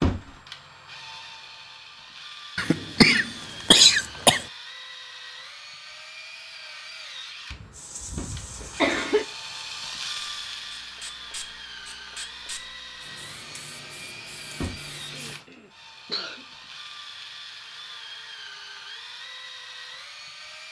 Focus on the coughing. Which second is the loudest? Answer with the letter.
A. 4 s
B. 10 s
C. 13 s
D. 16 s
A.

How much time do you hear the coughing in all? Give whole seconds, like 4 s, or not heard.
5 s.